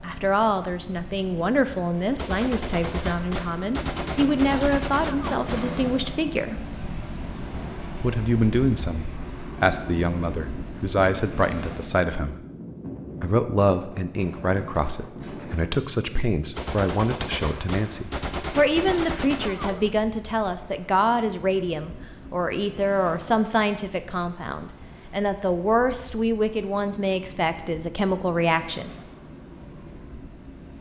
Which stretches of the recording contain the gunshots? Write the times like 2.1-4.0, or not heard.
2.1-5.8, 16.5-19.9.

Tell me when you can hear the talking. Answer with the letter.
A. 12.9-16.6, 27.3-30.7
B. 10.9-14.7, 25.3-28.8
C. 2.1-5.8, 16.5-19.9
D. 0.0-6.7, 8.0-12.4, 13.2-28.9
D.